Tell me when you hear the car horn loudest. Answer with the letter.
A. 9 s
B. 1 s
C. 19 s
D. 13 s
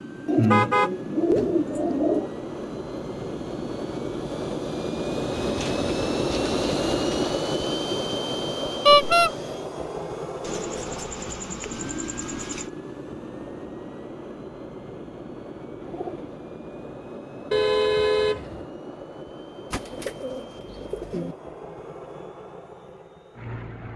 A.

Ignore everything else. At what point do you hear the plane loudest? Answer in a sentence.
The loudest moment of the plane is at 7 seconds.